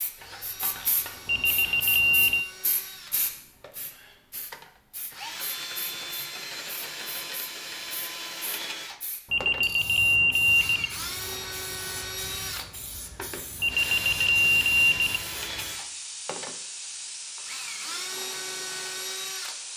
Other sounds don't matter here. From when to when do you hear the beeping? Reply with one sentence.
You can hear the beeping from 1.2 to 2.5 s, from 9.3 to 10.9 s and from 13.6 to 15.2 s.